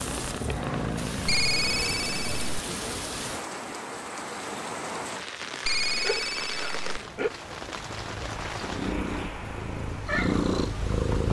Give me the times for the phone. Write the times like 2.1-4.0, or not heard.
1.2-2.5, 5.7-6.8.